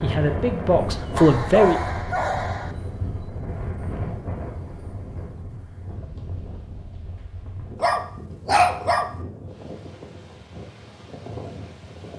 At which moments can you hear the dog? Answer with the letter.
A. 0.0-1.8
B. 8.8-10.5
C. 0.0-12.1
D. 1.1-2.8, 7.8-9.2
D.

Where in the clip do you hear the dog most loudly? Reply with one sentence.
The loudest moment of the dog is at 9 seconds.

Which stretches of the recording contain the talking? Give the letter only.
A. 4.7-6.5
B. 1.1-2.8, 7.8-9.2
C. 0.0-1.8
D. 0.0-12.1
C.